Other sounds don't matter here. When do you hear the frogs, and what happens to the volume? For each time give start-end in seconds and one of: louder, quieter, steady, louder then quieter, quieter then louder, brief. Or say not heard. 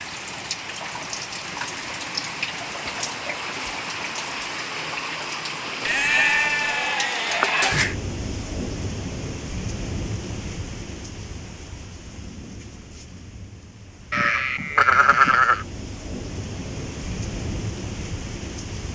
not heard.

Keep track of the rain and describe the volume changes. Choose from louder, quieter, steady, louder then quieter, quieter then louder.
quieter then louder.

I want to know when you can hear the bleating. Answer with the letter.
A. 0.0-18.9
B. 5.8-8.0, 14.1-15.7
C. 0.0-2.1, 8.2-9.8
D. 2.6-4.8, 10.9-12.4
B.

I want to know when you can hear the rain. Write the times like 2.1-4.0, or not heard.
0.0-18.9.